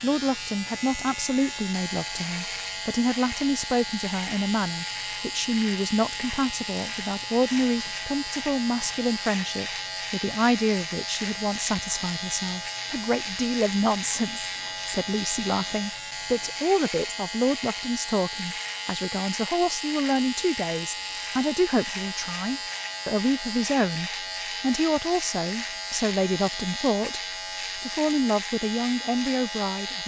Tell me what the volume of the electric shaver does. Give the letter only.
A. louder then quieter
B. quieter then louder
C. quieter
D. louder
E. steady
E.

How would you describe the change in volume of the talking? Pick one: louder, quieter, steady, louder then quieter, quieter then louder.
steady.